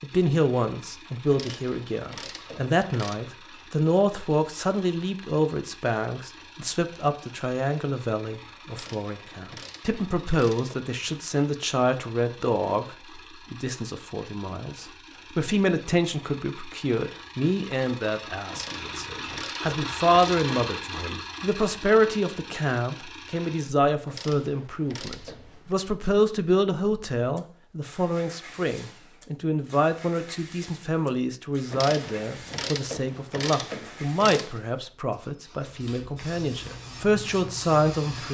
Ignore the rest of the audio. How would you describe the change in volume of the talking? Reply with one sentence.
The loudness of the talking stays about the same.